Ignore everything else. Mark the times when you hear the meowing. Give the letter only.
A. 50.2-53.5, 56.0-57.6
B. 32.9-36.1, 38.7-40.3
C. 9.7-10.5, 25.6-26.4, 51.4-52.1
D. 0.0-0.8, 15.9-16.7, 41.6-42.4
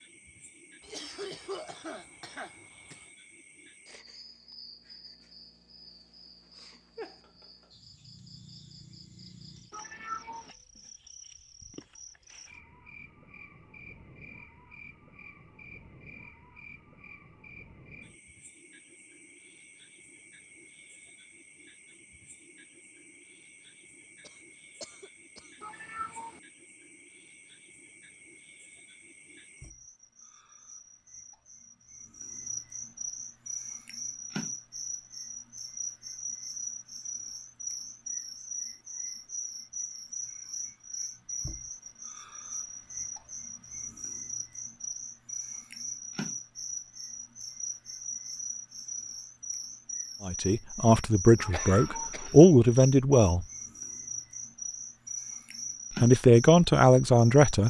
C.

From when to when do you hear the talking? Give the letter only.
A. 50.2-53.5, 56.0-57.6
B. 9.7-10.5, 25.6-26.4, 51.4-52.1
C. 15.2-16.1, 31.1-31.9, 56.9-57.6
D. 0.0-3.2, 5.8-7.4
A.